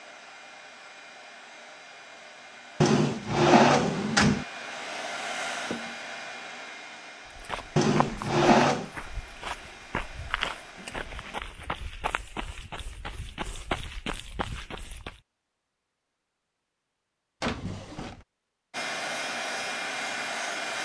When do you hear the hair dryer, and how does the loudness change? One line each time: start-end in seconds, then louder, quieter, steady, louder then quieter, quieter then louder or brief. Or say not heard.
0.0-11.3 louder then quieter
18.7-20.8 brief.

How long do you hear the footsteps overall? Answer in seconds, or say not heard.
8 s.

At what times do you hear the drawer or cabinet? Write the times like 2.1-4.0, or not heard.
2.8-4.5, 7.8-8.9, 17.4-18.2.